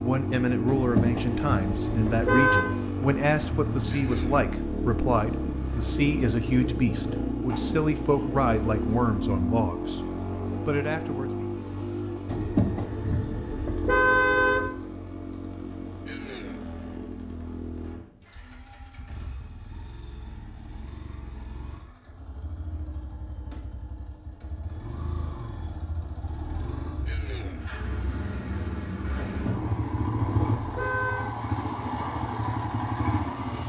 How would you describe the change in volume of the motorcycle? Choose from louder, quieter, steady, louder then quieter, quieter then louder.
quieter then louder.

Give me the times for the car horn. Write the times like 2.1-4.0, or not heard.
0.7-2.6, 12.2-14.8, 29.2-31.3.